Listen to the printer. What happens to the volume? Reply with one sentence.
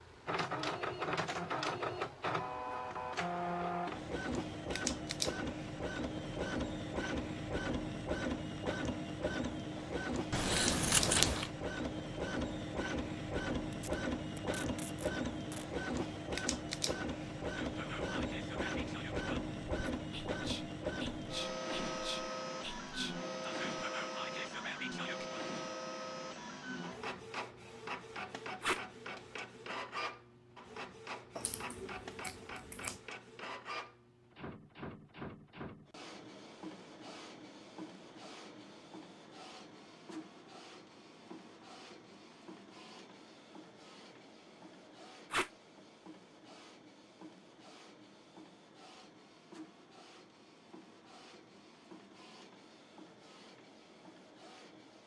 The loudness of the printer goes down.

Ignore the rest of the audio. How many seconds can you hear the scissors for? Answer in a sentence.
The scissors can be heard for 3 seconds in total.